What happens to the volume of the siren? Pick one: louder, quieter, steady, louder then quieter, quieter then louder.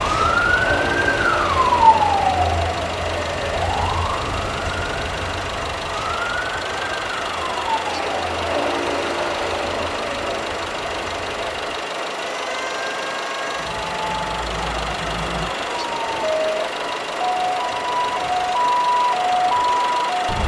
quieter then louder.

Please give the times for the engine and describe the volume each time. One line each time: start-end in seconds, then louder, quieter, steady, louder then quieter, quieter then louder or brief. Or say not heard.
0.0-20.4 steady.